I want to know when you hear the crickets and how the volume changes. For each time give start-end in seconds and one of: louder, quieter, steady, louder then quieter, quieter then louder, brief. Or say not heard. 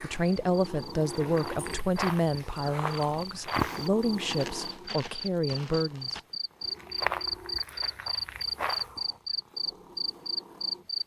0.2-11.0 louder.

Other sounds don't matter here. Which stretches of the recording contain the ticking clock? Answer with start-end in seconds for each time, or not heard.
not heard.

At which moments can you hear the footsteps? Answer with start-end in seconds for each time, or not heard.
1.1-9.0.